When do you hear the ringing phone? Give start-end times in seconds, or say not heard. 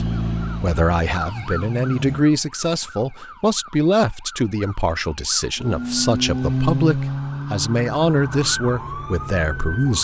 not heard.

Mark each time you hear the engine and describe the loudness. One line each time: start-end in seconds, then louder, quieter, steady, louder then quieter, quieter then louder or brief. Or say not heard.
0.0-2.2 brief
5.5-9.8 quieter.